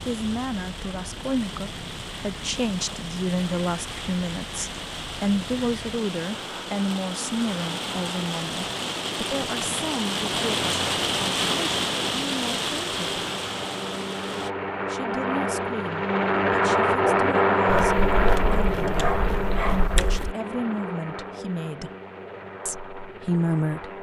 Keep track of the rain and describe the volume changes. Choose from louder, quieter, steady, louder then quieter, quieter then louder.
louder.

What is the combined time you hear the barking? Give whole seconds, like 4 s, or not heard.
3 s.